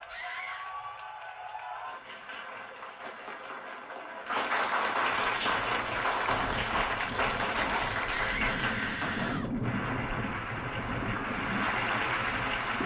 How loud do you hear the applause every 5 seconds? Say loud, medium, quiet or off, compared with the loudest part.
medium, loud, loud.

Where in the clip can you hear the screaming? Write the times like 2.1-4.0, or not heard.
0.1-0.7, 8.1-9.5.